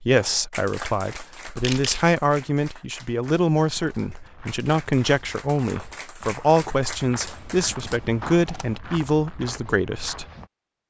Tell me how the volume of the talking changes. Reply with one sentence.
The volume of the talking stays about the same.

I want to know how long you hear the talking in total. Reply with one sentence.
You can hear the talking for 10 seconds altogether.